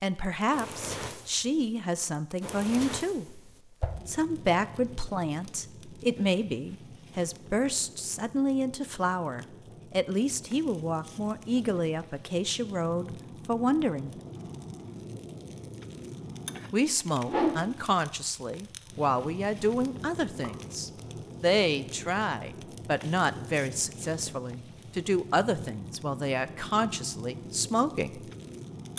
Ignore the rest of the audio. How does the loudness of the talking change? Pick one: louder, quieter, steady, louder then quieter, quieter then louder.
steady.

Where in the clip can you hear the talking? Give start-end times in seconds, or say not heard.
0.0-3.4, 4.0-14.2, 16.7-28.2.